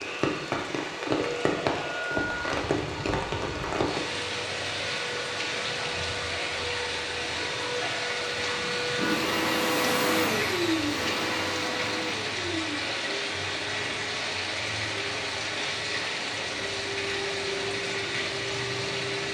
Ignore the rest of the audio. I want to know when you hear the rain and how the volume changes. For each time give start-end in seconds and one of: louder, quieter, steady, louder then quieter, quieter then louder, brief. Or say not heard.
0.0-19.2 steady.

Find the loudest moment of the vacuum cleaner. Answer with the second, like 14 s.
10 s.